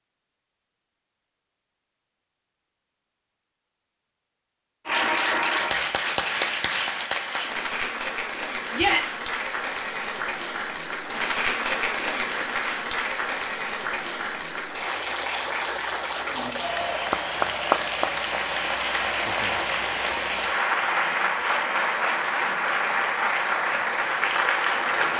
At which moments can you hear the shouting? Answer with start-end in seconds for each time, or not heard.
8.7-9.2.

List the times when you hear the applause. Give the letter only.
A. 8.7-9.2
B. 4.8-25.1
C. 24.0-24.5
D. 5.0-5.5
B.